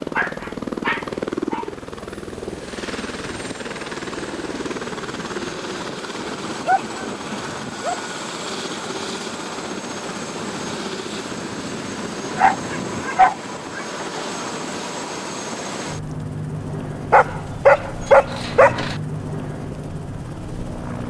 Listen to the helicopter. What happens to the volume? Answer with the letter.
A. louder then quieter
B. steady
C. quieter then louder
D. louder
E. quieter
B.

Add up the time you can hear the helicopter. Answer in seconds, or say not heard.
21 s.